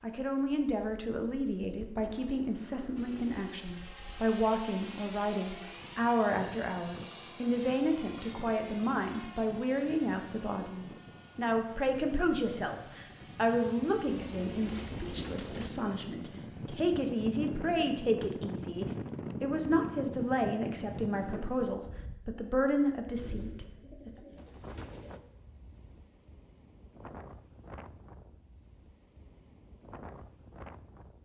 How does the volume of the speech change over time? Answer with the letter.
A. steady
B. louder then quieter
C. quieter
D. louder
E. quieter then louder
A.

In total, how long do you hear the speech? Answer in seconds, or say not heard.
24 s.